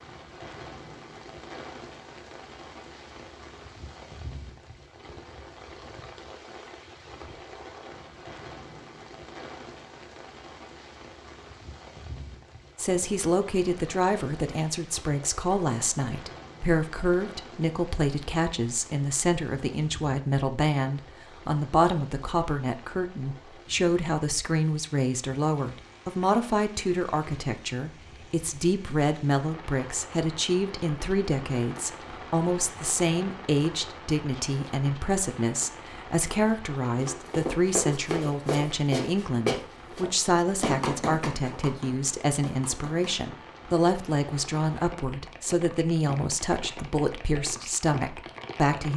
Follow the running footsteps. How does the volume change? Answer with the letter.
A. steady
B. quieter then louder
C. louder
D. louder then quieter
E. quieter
E.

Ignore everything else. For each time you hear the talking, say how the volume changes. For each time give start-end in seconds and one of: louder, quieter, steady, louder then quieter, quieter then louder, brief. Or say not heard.
12.8-48.9 steady.